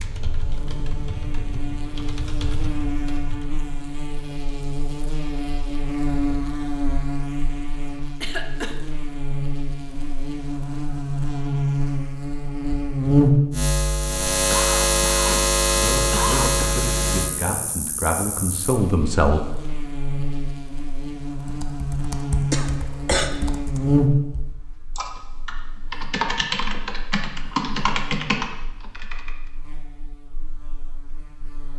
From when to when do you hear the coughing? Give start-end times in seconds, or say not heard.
8.2-8.8, 14.5-15.4, 16.1-16.8, 22.5-23.3.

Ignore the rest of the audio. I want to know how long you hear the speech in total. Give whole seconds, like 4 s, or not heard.
4 s.